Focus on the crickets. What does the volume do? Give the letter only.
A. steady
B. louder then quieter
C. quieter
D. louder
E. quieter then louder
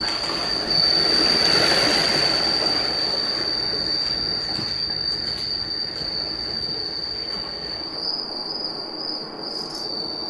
C.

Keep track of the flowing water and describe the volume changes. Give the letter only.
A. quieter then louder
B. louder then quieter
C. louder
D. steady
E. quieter
E.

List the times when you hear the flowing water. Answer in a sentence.
You can hear the flowing water from 0.0 to 10.2 s.